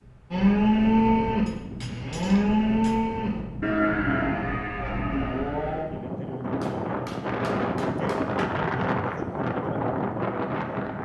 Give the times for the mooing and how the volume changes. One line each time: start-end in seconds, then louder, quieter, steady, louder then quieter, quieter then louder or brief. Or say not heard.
0.3-5.8 quieter.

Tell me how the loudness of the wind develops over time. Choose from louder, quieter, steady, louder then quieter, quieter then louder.
louder.